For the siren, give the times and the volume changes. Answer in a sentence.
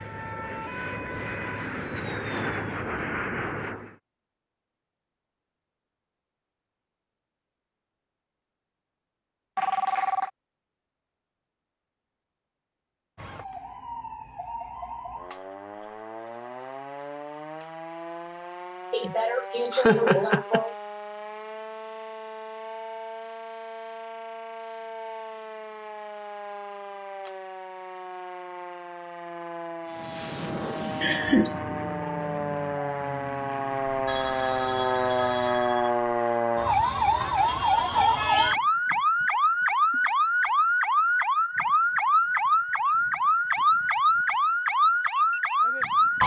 You can hear the siren briefly from 0.0 to 1.7 s; and from 13.2 to 46.2 s, getting louder.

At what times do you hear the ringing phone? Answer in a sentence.
The ringing phone can be heard from 9.6 to 10.3 s and from 34.0 to 35.9 s.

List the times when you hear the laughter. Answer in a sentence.
You can hear the laughter from 18.9 to 20.8 s and from 31.0 to 31.6 s.